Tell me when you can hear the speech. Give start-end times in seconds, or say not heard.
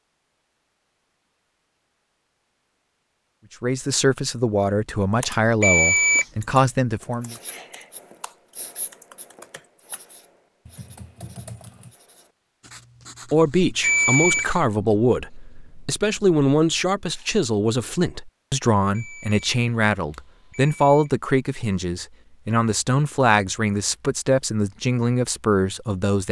3.6-7.3, 13.3-26.2.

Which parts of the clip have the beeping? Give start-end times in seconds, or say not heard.
5.6-6.2, 13.8-14.5, 18.9-21.1.